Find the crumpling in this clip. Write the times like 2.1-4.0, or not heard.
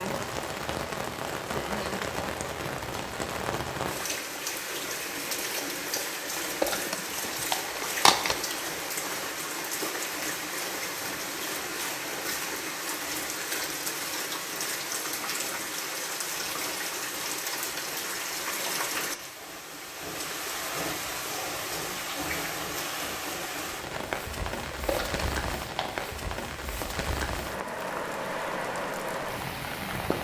6.3-8.3, 24.6-26.1.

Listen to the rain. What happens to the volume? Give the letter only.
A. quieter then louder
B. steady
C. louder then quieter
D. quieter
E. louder
B.